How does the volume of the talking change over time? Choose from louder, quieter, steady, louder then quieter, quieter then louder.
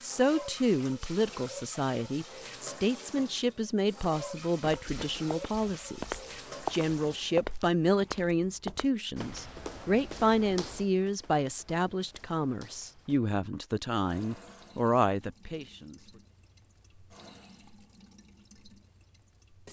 steady.